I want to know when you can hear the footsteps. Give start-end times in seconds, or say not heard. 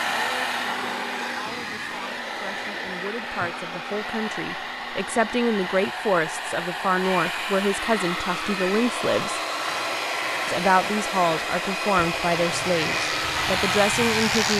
not heard.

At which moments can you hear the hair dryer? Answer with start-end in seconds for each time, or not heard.
0.0-14.5.